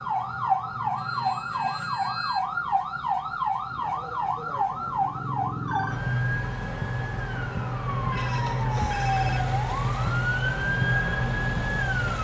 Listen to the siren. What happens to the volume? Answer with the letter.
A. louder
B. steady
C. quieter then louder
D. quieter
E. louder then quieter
B.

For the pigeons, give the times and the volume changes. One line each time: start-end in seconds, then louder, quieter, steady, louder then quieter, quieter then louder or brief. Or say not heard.
not heard.